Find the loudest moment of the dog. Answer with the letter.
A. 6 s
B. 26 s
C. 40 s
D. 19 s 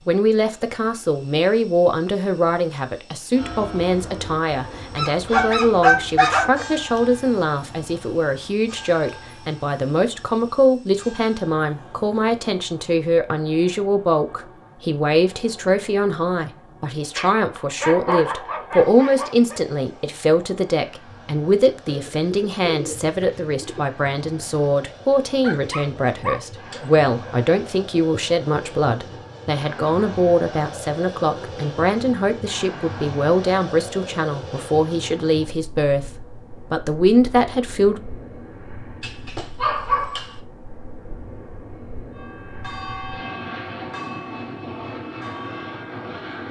A.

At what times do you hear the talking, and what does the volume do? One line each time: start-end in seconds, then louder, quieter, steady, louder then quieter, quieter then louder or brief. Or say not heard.
0.1-38.0 steady.